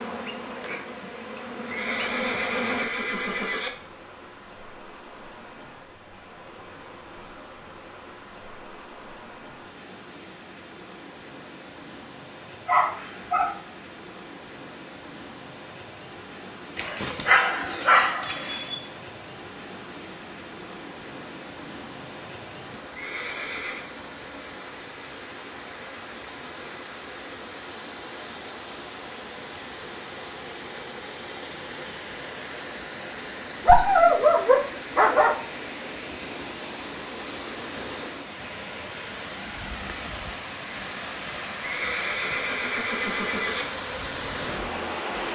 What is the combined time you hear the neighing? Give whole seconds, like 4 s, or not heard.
5 s.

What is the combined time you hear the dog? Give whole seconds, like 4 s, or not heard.
5 s.